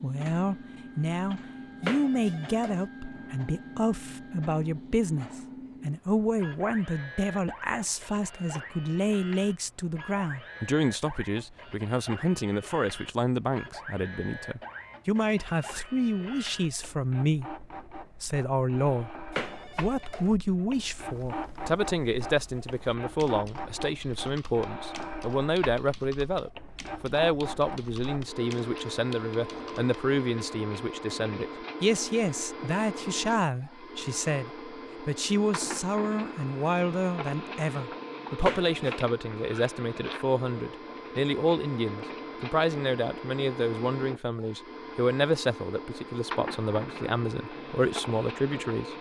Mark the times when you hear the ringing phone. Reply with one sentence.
You can hear the ringing phone from 1.8 to 2.9 s, from 19.3 to 20.3 s and from 38.4 to 39.0 s.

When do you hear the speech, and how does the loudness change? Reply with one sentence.
You can hear the speech from 0.0 to 48.9 s, at a steady volume.